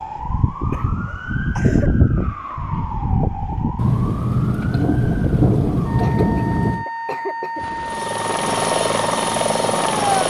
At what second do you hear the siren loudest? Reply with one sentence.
The loudest moment of the siren is at 2 seconds.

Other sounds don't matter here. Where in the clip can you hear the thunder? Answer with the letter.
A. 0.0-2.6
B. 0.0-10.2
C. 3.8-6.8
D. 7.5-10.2
C.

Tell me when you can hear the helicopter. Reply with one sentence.
The helicopter can be heard from 7.5 to 10.2 s.